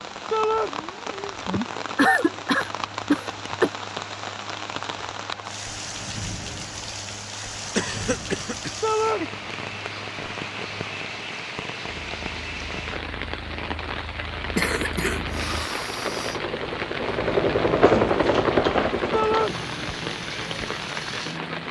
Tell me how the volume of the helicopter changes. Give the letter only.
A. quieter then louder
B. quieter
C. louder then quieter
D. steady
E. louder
E.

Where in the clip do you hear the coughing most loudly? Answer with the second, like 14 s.
2 s.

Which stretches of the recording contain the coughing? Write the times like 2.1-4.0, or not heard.
1.5-3.7, 7.8-8.9, 14.6-16.4.